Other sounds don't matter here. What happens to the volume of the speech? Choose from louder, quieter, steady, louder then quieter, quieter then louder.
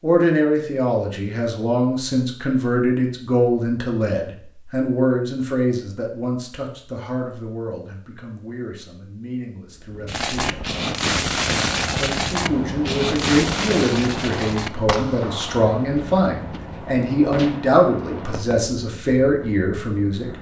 quieter then louder.